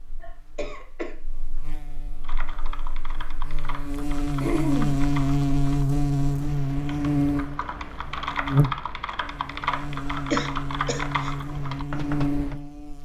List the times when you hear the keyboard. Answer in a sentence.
You can hear the keyboard from 2.2 to 12.6 s.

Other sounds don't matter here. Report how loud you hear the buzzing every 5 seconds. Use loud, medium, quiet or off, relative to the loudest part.
medium, loud, medium.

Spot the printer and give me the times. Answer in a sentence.
The printer can't be heard in this clip.